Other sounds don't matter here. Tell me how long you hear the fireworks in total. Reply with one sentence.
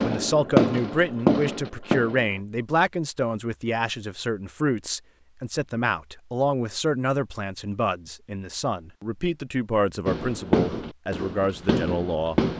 The fireworks can be heard for 5 seconds in total.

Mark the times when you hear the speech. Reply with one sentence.
The speech can be heard from 0.0 to 12.4 s.